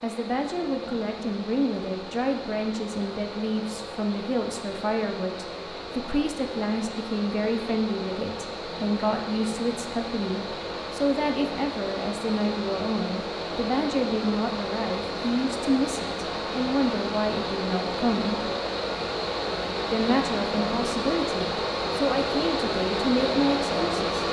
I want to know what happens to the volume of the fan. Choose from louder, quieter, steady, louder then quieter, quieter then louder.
louder.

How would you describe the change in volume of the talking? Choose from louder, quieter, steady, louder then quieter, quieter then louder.
steady.